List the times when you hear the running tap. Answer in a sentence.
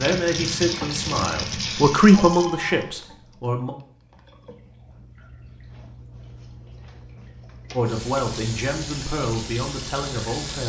You can hear the running tap from 0.0 to 10.6 s.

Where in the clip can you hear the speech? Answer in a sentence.
You can hear the speech from 0.0 to 3.8 s and from 7.8 to 10.6 s.